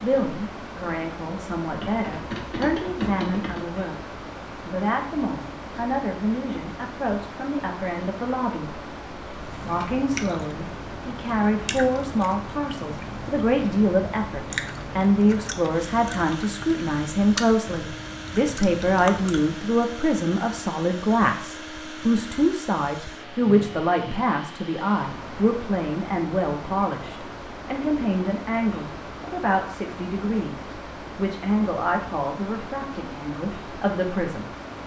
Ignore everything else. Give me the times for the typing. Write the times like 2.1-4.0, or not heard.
1.8-3.6.